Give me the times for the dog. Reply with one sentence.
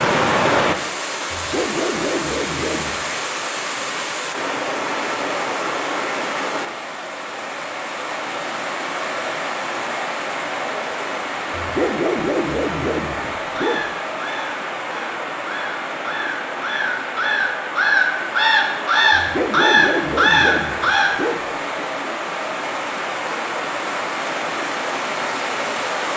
The dog can be heard from 1.3 to 3.1 s, from 11.5 to 13.9 s and from 19.1 to 21.9 s.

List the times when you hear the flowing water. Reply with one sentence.
The flowing water can be heard from 0.0 to 26.1 s.